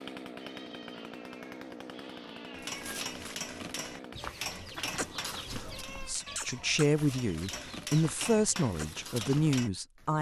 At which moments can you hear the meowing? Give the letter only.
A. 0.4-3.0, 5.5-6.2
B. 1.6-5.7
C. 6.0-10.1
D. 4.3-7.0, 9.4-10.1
A.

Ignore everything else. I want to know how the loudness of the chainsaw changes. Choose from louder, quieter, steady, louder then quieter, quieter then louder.
steady.